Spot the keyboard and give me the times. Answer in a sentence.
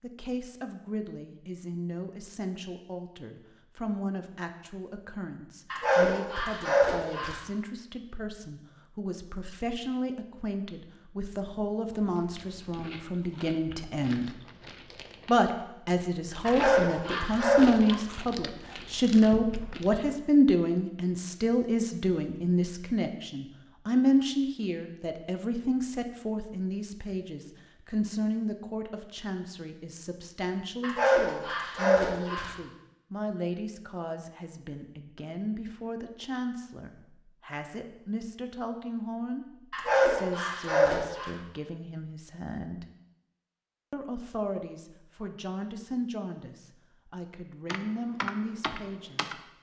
You can hear the keyboard from 47.6 to 49.4 s.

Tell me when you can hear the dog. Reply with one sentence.
You can hear the dog from 5.7 to 7.4 s, from 16.4 to 17.9 s, from 30.8 to 32.5 s and from 39.7 to 41.4 s.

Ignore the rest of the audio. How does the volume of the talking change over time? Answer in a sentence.
The loudness of the talking goes up, then down.